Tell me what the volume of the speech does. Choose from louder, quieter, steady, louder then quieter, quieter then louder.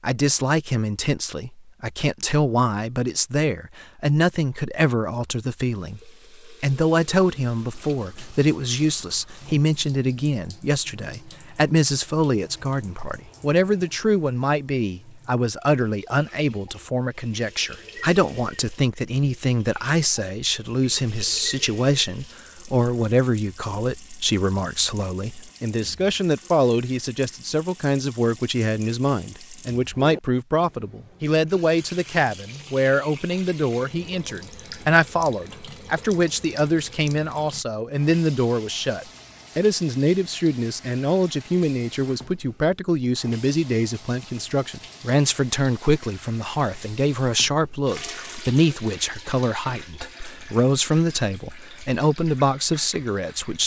steady.